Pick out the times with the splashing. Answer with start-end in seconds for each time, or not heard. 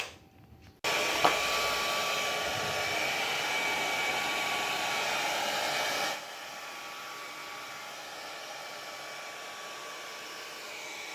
1.1-1.9.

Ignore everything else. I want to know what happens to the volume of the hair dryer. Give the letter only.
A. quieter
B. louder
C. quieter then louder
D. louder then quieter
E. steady
A.